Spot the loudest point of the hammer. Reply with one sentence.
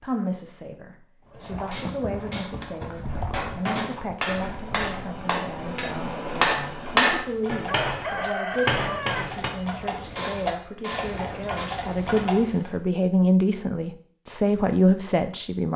The loudest moment of the hammer is at 7 seconds.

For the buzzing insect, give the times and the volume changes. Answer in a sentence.
You can't hear the buzzing insect here.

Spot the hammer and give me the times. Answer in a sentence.
The hammer can be heard from 1.7 to 12.2 s.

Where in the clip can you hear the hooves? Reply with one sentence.
You can hear the hooves from 1.3 to 12.8 s.